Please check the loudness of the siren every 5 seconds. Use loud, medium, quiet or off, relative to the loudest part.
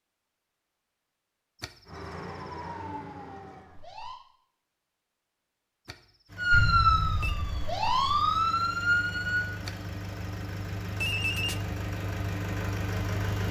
quiet, loud, off.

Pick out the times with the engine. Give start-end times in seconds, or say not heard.
6.2-13.4.